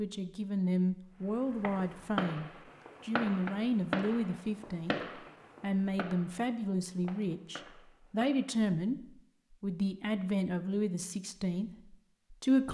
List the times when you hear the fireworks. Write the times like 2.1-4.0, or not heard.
1.5-8.5.